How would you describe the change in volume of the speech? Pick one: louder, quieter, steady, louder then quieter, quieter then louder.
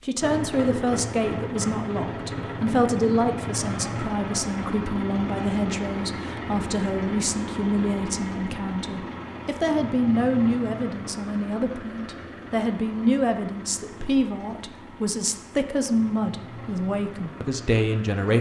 steady.